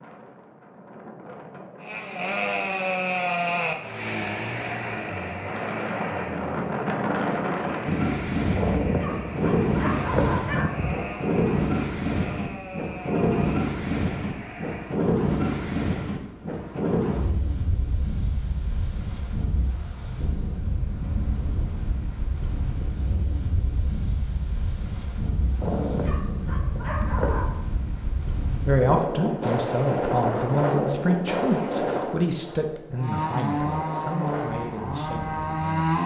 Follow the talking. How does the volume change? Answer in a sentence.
The volume of the talking goes down.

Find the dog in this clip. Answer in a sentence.
The dog can be heard from 8.5 to 11.0 s and from 25.6 to 27.5 s.